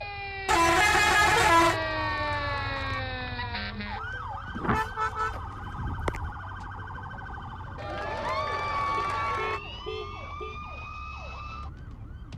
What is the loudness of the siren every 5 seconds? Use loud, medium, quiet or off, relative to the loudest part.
loud, medium, medium.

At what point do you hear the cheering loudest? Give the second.
9 s.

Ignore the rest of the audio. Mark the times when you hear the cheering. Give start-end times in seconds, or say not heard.
1.0-3.0, 7.8-9.6.